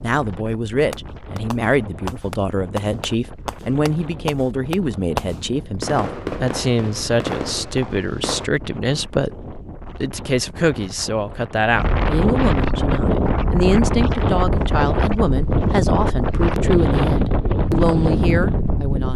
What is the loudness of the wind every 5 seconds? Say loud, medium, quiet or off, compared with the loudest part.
quiet, quiet, loud, loud.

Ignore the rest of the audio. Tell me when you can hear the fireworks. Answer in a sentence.
You can hear the fireworks from 0.9 to 8.5 s.